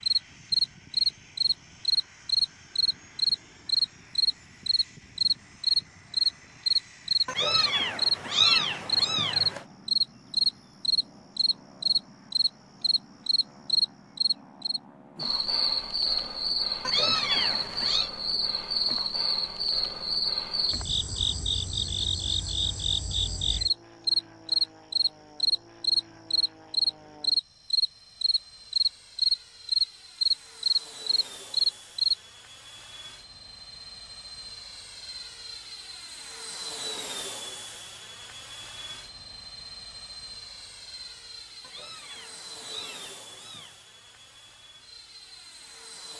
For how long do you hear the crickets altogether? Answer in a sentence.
You can hear the crickets for 32 seconds altogether.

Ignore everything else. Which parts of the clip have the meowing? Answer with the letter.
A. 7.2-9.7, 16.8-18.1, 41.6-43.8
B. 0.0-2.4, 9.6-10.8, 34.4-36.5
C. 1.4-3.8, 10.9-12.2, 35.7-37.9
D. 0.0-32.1
A.